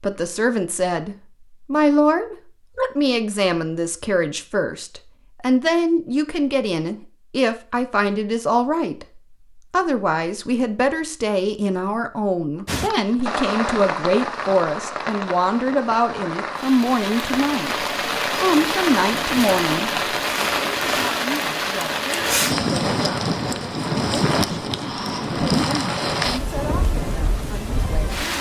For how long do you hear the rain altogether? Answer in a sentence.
You can hear the rain for 16 seconds altogether.